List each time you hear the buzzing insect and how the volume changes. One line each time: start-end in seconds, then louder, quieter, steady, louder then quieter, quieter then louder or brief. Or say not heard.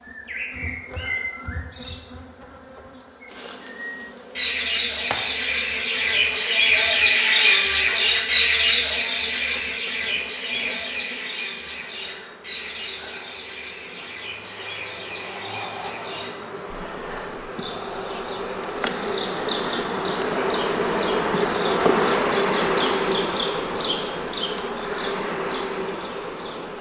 0.0-26.7 louder.